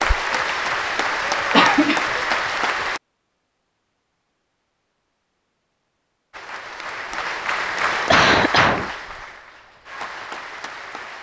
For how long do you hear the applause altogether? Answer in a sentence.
You can hear the applause for 8 seconds altogether.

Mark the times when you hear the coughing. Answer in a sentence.
The coughing can be heard from 1.5 to 2.2 s and from 8.1 to 8.9 s.